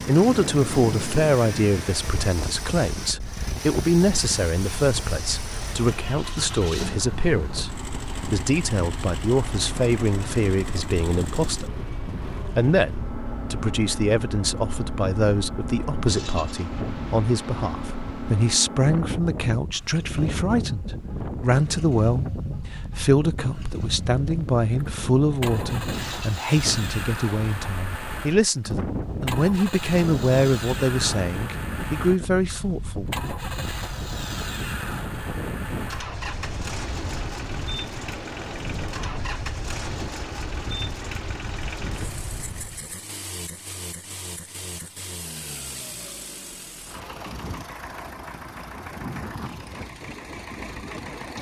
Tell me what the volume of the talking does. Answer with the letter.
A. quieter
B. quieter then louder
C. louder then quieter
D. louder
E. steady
E.